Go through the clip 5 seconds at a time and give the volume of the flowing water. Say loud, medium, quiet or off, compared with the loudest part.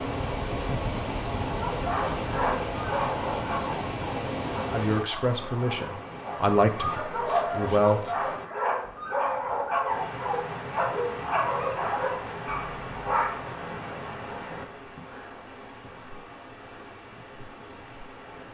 loud, medium, medium, quiet.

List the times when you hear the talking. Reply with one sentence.
The talking can be heard from 4.7 to 8.0 s.